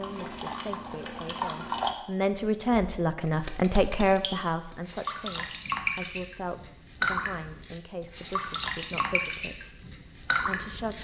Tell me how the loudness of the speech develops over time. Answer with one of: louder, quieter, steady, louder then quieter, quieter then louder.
louder then quieter.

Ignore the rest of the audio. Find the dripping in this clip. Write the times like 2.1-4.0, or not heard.
0.0-10.9.